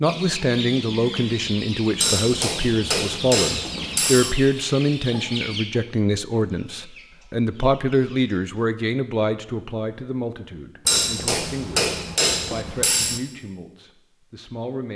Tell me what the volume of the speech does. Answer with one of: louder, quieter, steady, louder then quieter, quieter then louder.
quieter.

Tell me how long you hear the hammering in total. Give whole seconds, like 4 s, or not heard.
5 s.